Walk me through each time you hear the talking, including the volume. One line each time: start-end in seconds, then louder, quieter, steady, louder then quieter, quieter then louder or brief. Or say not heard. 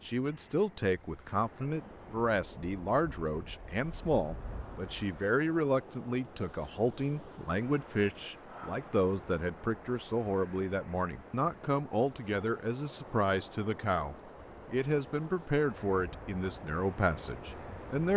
0.0-18.1 steady.